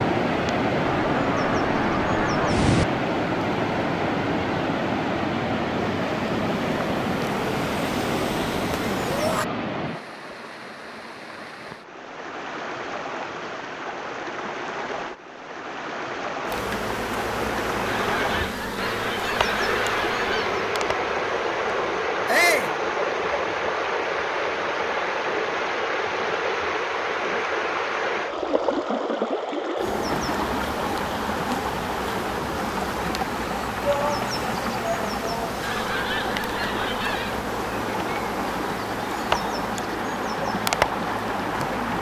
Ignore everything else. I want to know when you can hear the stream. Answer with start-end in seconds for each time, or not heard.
0.0-41.9.